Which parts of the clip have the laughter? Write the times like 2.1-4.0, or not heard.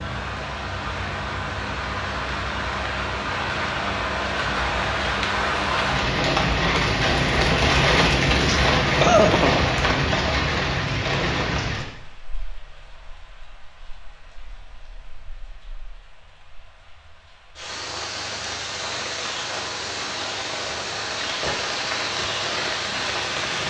8.4-9.6.